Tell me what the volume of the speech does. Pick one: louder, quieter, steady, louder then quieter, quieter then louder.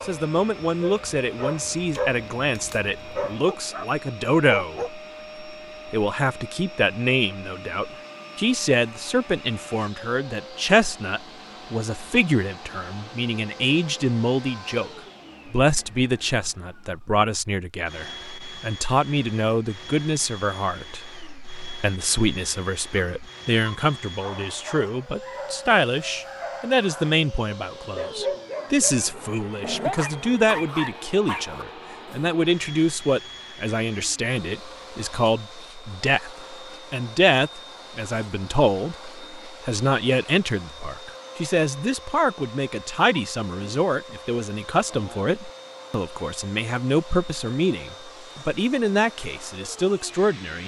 steady.